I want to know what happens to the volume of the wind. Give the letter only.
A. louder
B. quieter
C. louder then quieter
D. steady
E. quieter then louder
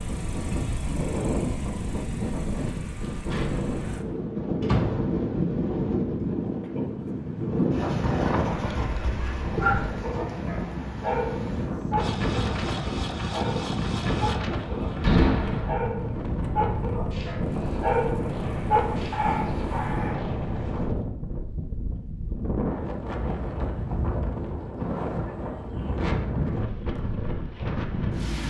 D.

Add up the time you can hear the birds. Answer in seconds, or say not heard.
not heard.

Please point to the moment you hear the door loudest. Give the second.
15 s.